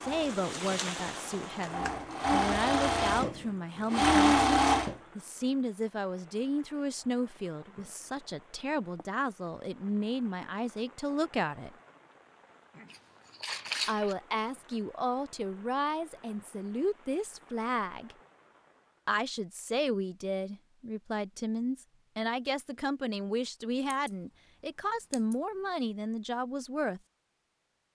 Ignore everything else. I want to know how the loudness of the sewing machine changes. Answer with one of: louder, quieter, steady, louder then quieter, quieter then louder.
louder.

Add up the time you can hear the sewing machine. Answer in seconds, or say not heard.
5 s.